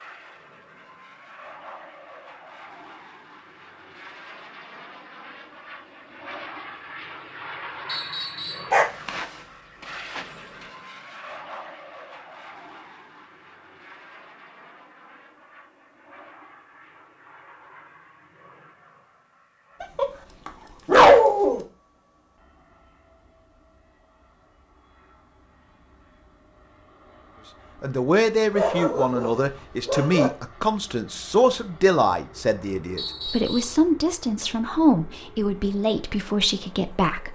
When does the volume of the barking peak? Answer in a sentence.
The volume of the barking peaks at 21 seconds.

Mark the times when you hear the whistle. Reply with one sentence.
The whistle can be heard from 7.8 to 8.7 s and from 33.0 to 33.8 s.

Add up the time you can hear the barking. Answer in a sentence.
The barking can be heard for 4 seconds in total.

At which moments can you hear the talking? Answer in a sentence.
The talking can be heard from 27.8 to 37.3 s.